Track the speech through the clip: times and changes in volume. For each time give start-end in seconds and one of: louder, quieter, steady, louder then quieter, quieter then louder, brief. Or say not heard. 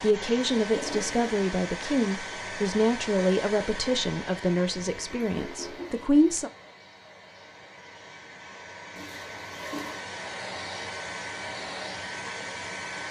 0.0-6.5 quieter.